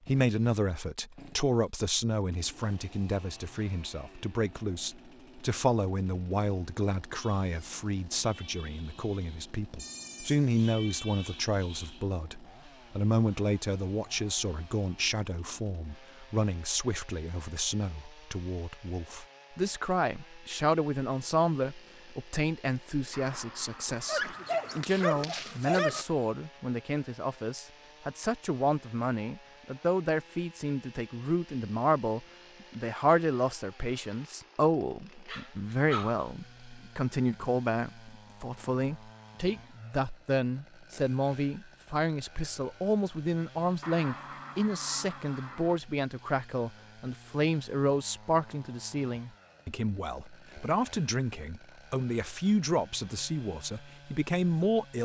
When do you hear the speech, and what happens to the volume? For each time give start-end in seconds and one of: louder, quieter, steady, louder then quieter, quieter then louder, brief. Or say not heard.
0.1-55.0 steady.